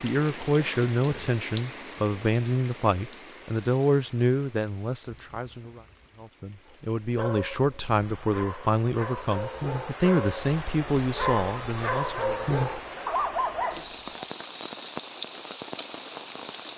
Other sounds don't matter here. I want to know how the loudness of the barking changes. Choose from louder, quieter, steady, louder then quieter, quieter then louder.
louder.